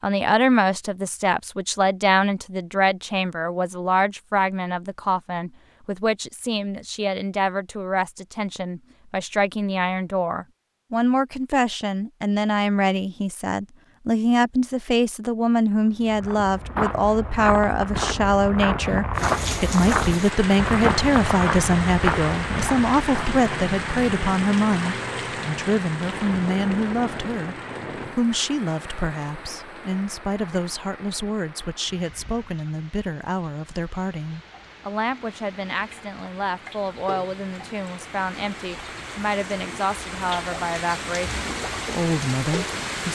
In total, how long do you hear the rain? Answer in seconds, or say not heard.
24 s.